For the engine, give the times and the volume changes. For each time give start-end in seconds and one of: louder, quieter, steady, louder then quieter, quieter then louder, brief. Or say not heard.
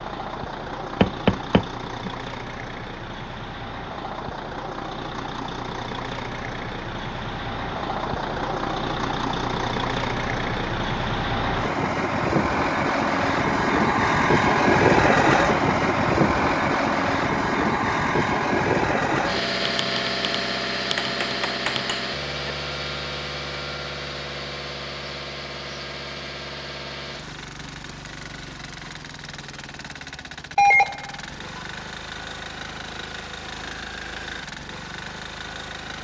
0.0-35.9 louder then quieter.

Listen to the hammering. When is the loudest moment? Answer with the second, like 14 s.
1 s.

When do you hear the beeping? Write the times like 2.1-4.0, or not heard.
30.6-31.6.